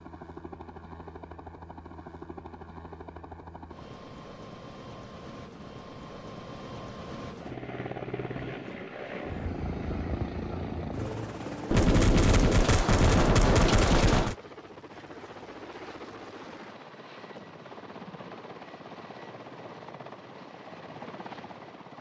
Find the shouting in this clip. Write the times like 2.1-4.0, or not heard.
not heard.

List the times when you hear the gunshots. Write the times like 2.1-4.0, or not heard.
11.7-14.3.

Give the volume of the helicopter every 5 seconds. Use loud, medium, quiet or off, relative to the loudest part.
medium, loud, loud, medium, medium.